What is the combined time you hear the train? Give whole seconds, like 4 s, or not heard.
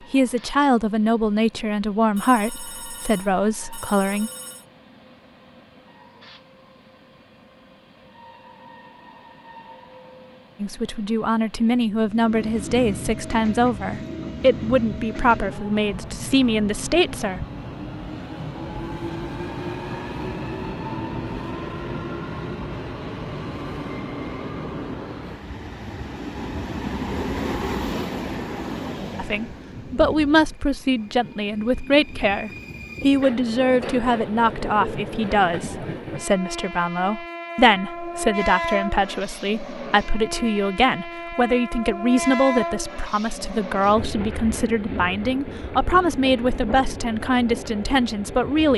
49 s.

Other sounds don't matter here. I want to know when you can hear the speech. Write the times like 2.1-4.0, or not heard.
0.1-4.3, 10.6-17.4, 29.1-48.7.